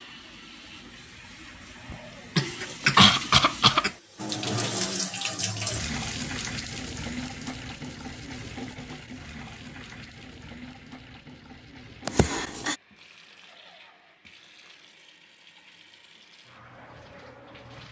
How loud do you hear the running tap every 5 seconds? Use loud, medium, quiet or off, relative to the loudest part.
loud, loud, quiet, quiet.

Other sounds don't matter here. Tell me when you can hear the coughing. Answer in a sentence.
You can hear the coughing from 1.9 to 3.9 s and from 12.1 to 12.8 s.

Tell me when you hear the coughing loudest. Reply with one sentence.
The loudest moment of the coughing is at 3 seconds.